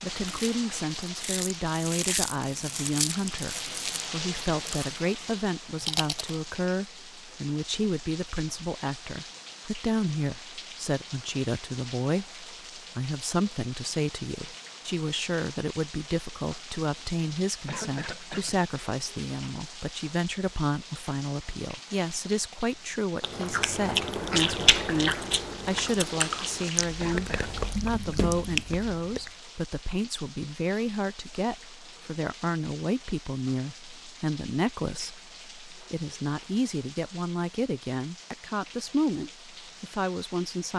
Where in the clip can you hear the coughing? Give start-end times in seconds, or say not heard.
17.6-18.6, 27.0-27.5.